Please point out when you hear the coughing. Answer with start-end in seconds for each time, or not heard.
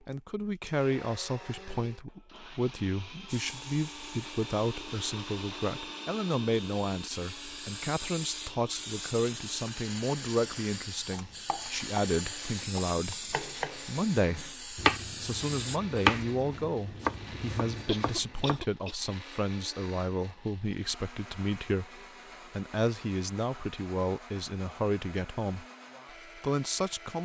17.9-19.0.